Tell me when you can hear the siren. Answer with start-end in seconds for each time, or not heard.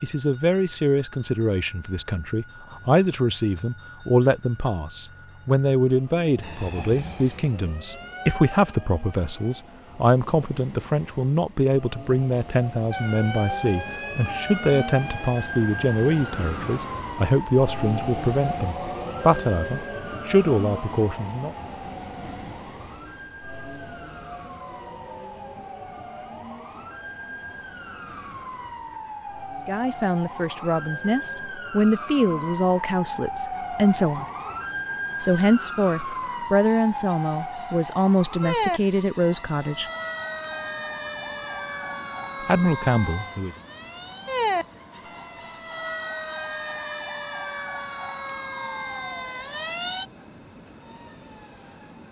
6.4-9.7, 12.9-50.0.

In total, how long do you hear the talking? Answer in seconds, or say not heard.
32 s.